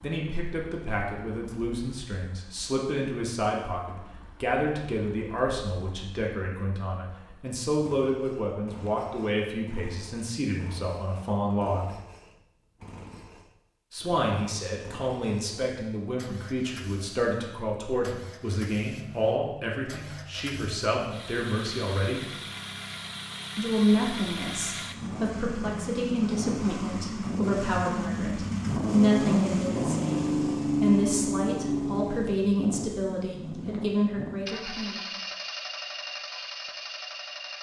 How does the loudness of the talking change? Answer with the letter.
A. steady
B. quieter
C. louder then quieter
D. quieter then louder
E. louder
A.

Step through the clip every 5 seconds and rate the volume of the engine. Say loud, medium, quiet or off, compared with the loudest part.
quiet, quiet, quiet, quiet, medium, loud, loud, medium.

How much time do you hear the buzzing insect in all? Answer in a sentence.
You can't hear the buzzing insect here.